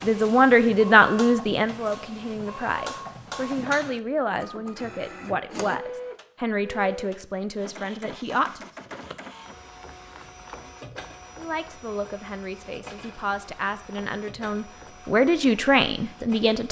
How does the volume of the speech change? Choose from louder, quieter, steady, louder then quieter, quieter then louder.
quieter then louder.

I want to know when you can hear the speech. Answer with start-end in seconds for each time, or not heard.
0.0-8.7, 11.3-16.6.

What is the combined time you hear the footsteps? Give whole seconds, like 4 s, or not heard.
not heard.